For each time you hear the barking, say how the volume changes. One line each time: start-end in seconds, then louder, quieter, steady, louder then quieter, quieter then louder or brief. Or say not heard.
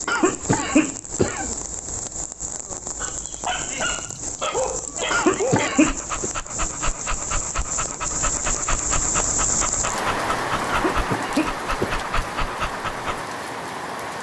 3.0-13.2 steady.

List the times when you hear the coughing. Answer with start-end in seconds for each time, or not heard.
0.1-1.4, 5.1-6.3, 10.7-12.1.